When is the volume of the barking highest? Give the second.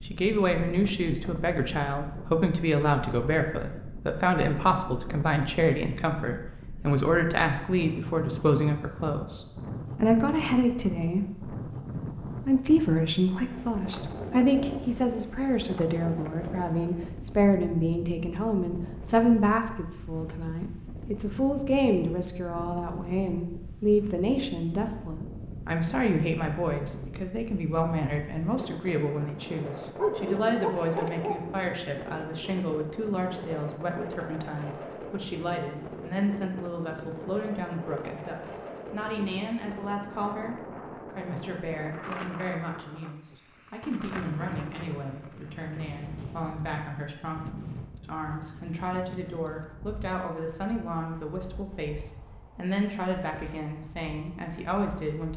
30 s.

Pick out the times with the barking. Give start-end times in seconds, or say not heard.
29.9-31.6.